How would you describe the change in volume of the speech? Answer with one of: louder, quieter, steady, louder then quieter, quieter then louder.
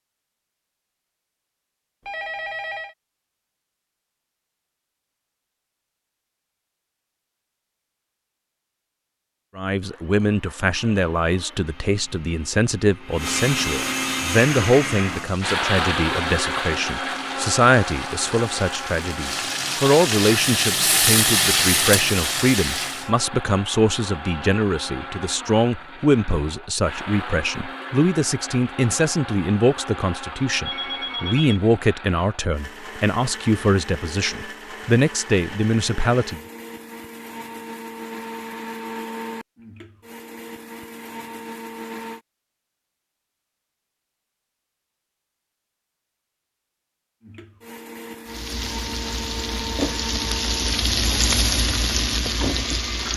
steady.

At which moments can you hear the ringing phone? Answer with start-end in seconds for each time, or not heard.
2.0-3.0, 30.6-31.6.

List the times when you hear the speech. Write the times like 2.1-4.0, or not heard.
9.6-36.4.